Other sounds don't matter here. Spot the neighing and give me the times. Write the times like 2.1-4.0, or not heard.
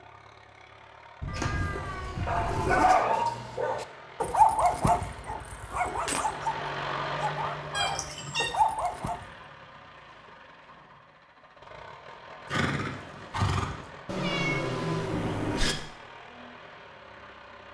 1.2-2.9, 12.4-13.9.